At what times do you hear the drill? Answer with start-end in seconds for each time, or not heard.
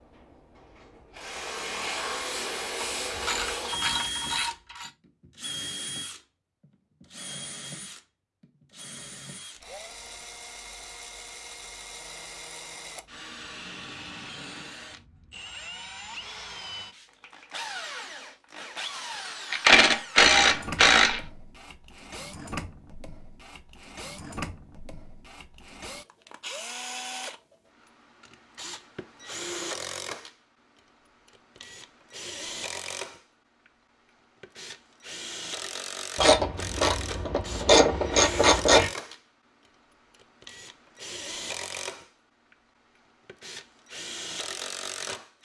0.2-45.3.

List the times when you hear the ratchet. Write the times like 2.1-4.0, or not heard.
2.8-4.9, 19.5-21.2, 36.1-38.9.